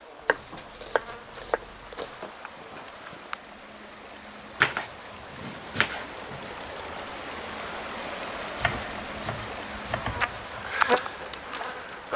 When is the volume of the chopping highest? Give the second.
5 s.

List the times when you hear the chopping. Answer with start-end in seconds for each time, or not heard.
0.2-2.3, 4.6-6.5, 8.6-10.6.